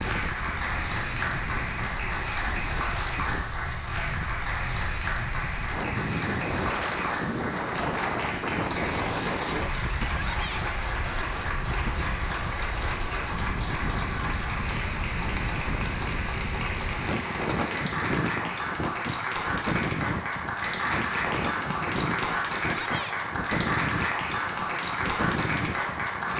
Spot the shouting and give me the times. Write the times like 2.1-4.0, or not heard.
10.1-10.7, 22.8-23.2.